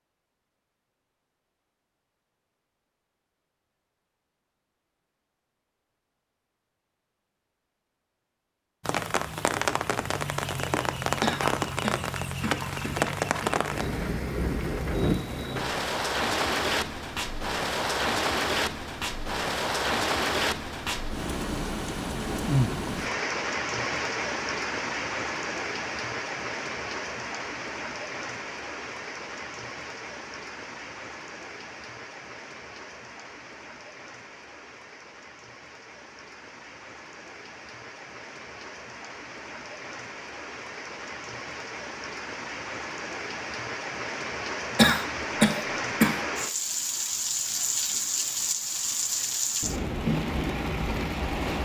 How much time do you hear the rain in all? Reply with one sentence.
The rain can be heard for 43 seconds in total.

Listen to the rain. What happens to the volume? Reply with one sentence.
The loudness of the rain goes down, then up.